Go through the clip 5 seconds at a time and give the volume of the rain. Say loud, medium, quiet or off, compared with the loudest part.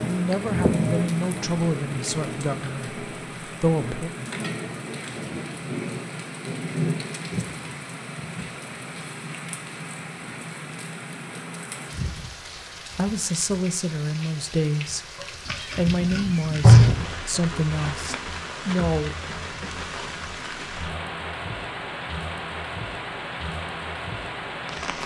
loud, loud, medium, loud, loud.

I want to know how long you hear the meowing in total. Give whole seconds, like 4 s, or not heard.
2 s.